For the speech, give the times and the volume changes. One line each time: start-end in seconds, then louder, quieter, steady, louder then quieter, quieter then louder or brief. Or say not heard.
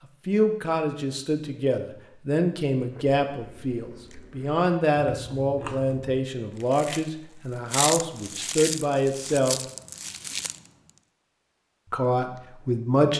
0.2-9.6 steady
11.9-13.1 brief.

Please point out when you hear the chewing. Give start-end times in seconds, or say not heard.
2.8-10.6.